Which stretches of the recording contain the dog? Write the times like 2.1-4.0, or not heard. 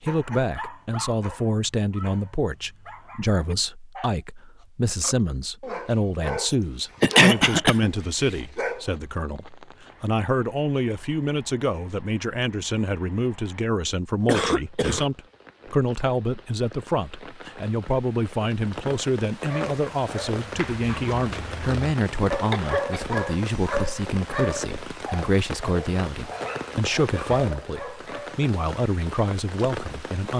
0.1-8.9, 19.4-28.4.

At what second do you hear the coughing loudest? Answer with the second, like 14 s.
7 s.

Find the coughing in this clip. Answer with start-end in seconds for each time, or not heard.
6.5-7.9, 14.2-15.1, 22.4-23.1.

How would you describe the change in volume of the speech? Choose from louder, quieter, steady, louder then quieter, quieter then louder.
steady.